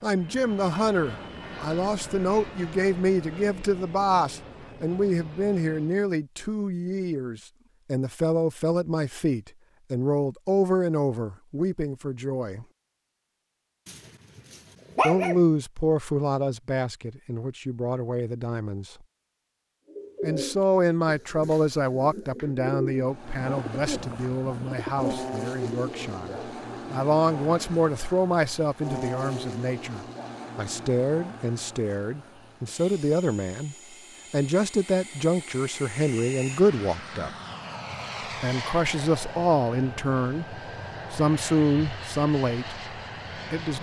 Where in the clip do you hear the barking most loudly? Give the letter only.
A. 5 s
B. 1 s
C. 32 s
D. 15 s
D.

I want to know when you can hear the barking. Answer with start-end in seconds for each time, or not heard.
13.8-15.4.